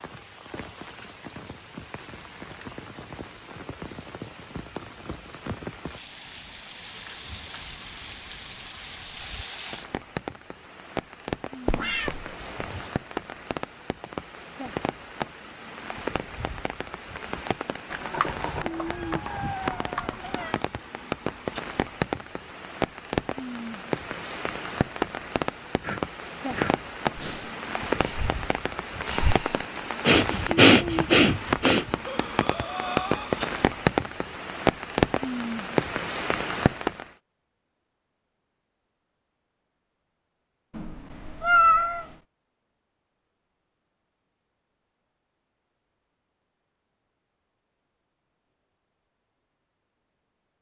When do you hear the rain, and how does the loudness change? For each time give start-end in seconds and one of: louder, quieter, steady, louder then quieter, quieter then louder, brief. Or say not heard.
0.0-37.0 louder.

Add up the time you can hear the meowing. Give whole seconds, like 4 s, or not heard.
5 s.